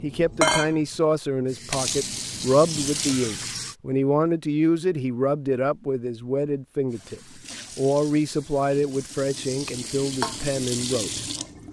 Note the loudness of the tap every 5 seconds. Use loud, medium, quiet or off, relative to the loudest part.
loud, quiet, loud.